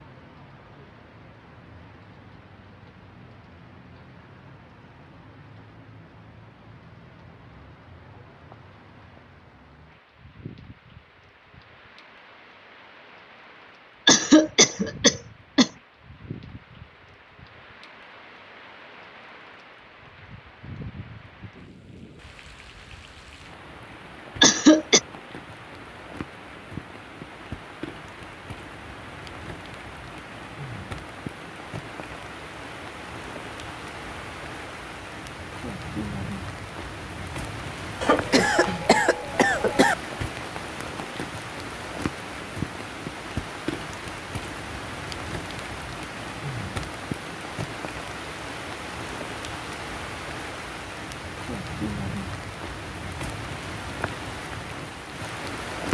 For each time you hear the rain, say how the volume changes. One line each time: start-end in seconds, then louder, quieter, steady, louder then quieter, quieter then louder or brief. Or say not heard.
0.0-55.8 louder.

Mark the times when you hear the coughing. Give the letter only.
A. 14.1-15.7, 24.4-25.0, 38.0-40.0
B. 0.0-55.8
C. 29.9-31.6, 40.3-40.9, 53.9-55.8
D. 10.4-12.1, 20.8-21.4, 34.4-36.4
A.